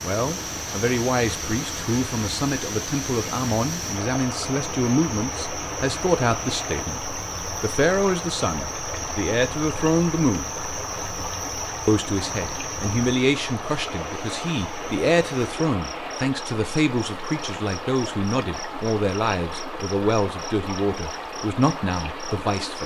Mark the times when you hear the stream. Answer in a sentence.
The stream can be heard from 0.0 to 22.8 s.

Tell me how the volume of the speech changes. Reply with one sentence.
The loudness of the speech stays about the same.